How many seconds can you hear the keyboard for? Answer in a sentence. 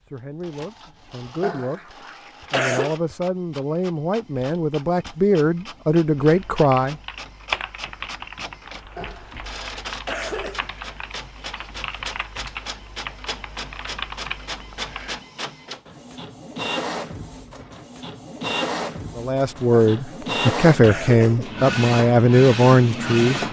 You can hear the keyboard for 9 seconds altogether.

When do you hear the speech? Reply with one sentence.
You can hear the speech from 0.0 to 7.0 s and from 19.1 to 23.4 s.